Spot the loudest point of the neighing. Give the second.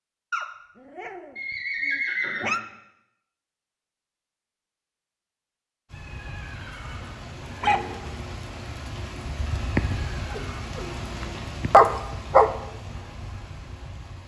2 s.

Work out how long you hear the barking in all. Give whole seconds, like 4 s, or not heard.
6 s.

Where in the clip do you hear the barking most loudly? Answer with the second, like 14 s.
12 s.